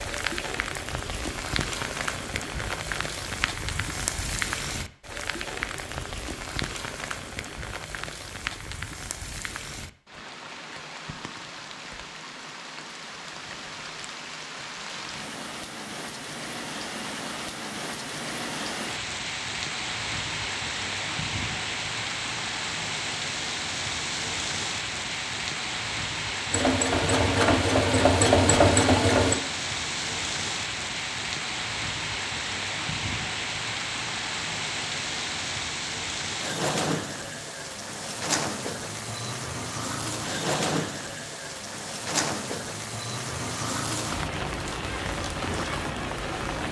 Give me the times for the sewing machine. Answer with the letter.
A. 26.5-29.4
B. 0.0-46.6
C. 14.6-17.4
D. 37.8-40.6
A.